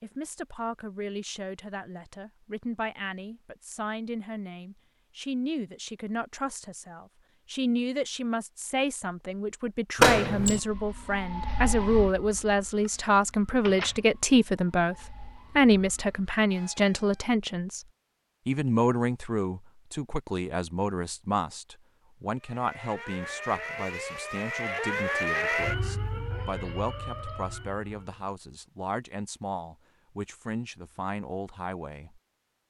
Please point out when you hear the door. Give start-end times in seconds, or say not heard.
9.9-10.6.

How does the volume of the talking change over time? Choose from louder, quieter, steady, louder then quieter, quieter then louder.
louder then quieter.